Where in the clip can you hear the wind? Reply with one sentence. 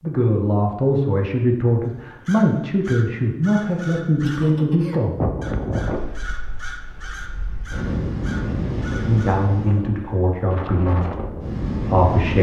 You can hear the wind from 5.2 to 12.3 s.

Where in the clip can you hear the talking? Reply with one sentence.
You can hear the talking from 0.0 to 5.2 s and from 9.1 to 12.3 s.